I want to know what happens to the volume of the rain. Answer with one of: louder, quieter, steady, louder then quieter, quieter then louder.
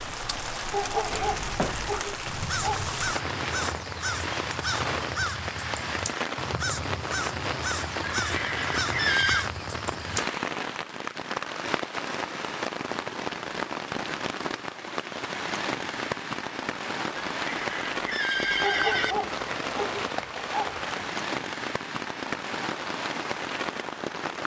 steady.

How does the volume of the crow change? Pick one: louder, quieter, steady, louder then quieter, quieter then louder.
steady.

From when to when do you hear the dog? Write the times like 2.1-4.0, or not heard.
0.7-2.9, 18.6-21.1.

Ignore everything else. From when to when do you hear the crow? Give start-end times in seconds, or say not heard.
1.1-10.2.